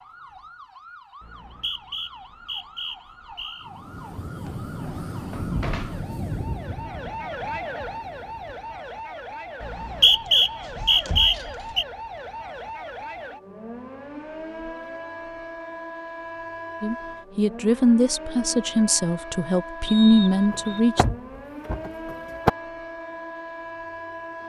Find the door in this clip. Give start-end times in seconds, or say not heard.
4.5-6.1, 10.2-11.7, 20.9-22.5.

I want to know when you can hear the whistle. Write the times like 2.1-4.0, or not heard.
1.2-3.6, 9.6-11.8, 19.9-20.8.